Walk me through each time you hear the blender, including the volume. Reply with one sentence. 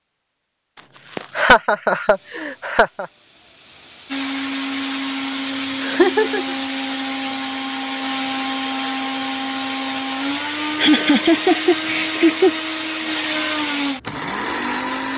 You can hear the blender from 4.1 to 15.1 s, at a steady volume.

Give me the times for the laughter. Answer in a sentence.
You can hear the laughter from 1.1 to 3.0 s, from 5.8 to 6.5 s and from 10.8 to 12.5 s.